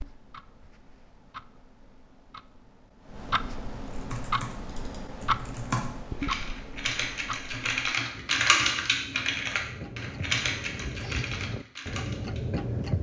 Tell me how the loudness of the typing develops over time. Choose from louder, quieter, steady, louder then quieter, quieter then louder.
louder then quieter.